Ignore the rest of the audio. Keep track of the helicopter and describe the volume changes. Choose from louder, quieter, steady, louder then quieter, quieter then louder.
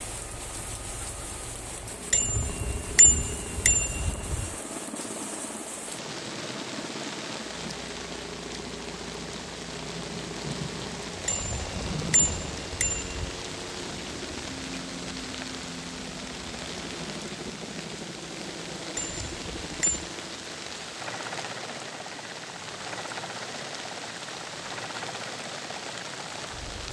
steady.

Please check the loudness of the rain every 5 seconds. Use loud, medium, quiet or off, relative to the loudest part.
medium, loud, loud, loud, loud, loud.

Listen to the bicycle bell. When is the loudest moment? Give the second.
3 s.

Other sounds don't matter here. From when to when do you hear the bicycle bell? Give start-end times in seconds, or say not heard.
2.1-4.5, 11.2-13.3, 18.9-20.1.